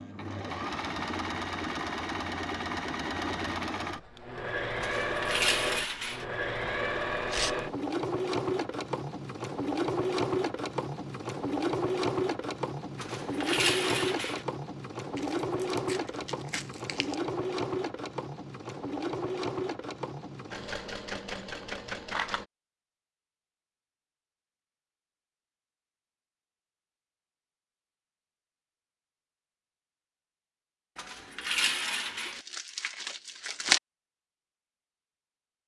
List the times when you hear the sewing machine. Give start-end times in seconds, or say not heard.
0.0-22.4.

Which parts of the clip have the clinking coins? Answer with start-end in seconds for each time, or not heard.
4.8-6.2, 13.0-14.4, 30.9-32.4.